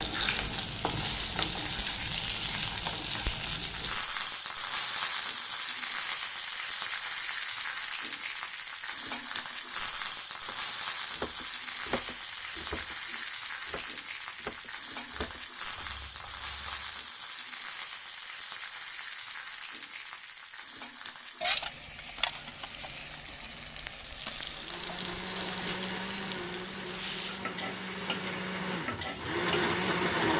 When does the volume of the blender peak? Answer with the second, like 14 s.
30 s.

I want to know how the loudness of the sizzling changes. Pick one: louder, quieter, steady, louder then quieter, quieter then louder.
quieter.